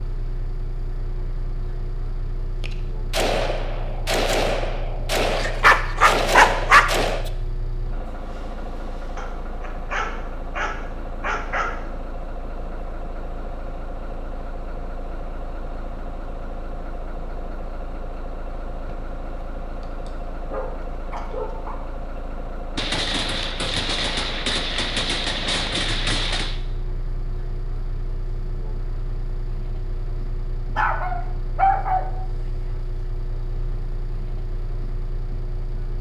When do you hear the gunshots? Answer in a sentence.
You can hear the gunshots from 2.6 to 7.3 s and from 22.8 to 26.6 s.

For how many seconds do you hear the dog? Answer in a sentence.
You can hear the dog for 8 seconds altogether.